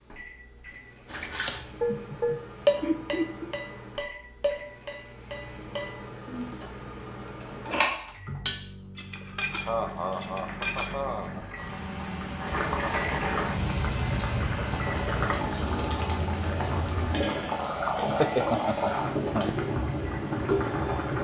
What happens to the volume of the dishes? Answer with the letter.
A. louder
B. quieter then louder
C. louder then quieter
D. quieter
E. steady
B.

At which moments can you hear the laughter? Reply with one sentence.
The laughter can be heard from 1.9 to 3.5 s, from 9.2 to 11.4 s and from 18.1 to 19.5 s.